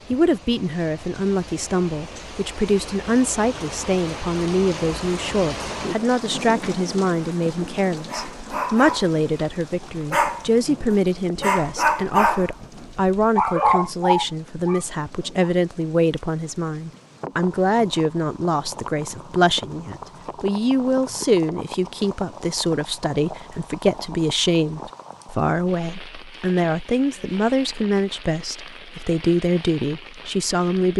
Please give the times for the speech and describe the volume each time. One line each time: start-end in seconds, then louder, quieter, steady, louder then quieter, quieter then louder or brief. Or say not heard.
0.1-30.9 steady.